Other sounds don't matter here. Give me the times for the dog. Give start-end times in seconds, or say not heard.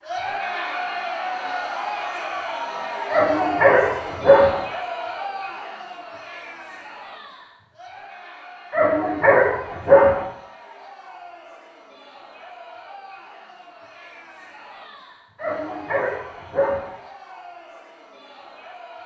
3.1-4.6, 8.7-10.2, 15.3-16.9.